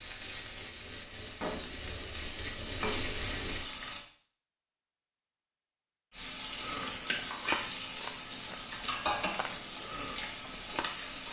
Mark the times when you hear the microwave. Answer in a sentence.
You can't hear the microwave here.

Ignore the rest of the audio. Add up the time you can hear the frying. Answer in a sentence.
The frying can be heard for 9 seconds in total.